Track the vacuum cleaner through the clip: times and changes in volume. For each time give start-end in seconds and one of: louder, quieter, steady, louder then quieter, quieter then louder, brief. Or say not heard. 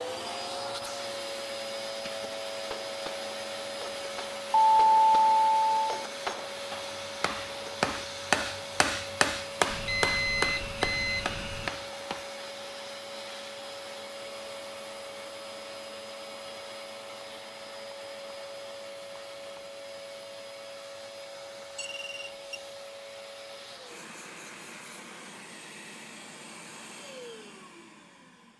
0.0-28.5 quieter.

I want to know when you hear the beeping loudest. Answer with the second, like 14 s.
5 s.